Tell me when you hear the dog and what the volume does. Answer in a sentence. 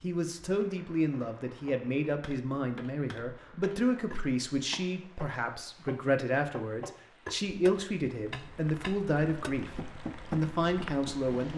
You can't hear the dog here.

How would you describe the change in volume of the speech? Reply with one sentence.
The volume of the speech stays about the same.